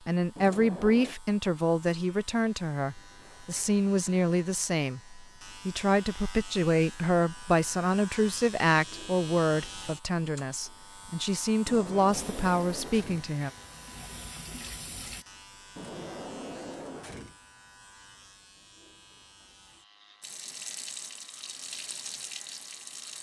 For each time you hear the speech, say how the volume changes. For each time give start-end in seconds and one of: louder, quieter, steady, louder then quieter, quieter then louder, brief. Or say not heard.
0.1-13.5 steady.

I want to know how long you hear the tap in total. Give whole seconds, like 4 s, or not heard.
6 s.